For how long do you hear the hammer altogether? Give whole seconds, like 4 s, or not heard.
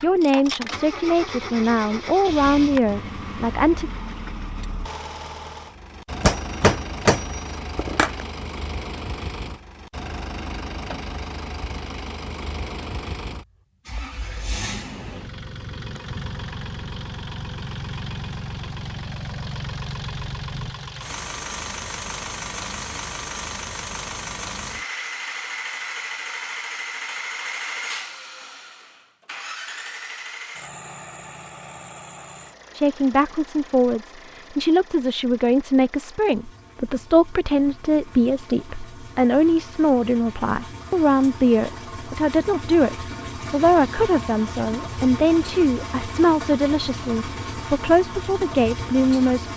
2 s.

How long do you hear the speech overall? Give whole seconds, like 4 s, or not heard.
21 s.